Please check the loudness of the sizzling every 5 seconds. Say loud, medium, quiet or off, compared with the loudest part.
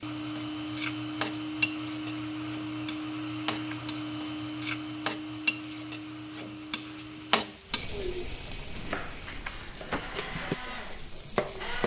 loud, loud, medium.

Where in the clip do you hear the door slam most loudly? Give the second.
10 s.